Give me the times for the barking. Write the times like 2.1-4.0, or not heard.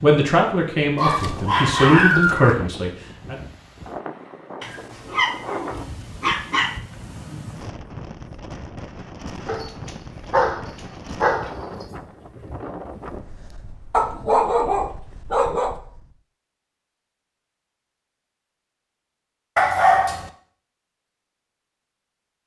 0.9-2.5, 4.6-6.8, 9.4-11.6, 13.9-15.8, 19.6-20.3.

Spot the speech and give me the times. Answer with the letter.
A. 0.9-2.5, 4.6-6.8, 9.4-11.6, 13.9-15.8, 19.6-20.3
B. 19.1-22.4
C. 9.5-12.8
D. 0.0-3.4
D.